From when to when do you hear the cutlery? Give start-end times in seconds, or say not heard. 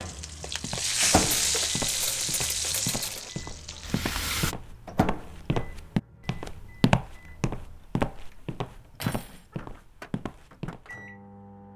1.3-3.3, 9.0-9.4.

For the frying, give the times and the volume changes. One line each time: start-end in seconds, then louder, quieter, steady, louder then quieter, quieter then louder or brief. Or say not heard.
0.0-4.5 quieter.